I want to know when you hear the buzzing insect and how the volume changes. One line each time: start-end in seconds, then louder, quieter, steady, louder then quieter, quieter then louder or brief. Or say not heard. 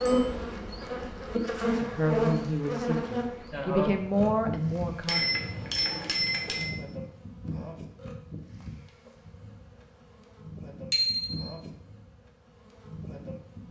0.0-13.6 quieter.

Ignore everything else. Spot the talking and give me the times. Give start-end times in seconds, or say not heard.
1.6-5.3.